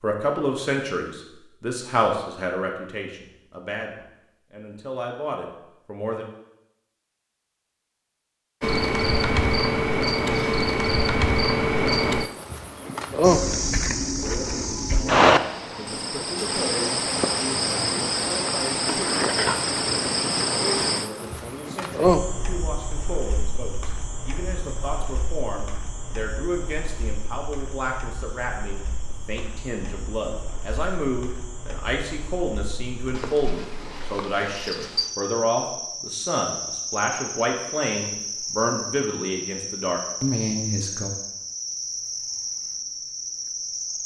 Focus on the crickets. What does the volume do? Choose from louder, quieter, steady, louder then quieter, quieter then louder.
quieter then louder.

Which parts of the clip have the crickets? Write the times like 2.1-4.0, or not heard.
8.6-44.0.